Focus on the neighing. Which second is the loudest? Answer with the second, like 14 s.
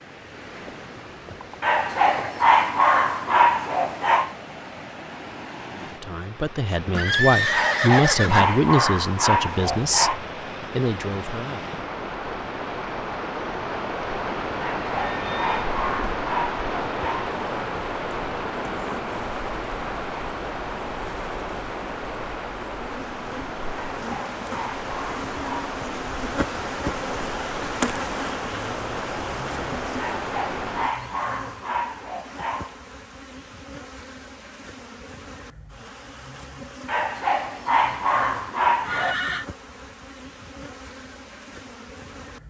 7 s.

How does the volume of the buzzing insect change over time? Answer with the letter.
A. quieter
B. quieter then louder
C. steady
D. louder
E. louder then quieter
E.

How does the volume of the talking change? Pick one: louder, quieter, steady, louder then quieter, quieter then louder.
louder then quieter.